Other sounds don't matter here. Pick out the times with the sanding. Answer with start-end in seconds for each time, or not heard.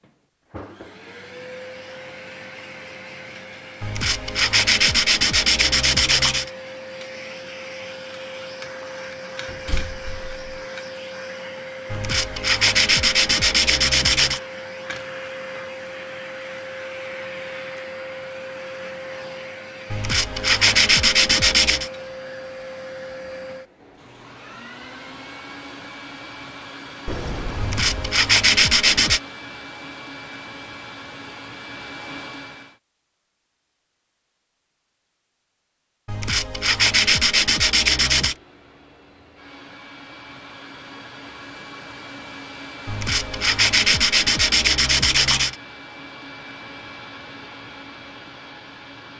3.8-6.5, 11.9-14.4, 19.9-21.9, 27.6-29.2, 36.0-38.4, 42.9-45.5.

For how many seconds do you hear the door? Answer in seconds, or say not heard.
2 s.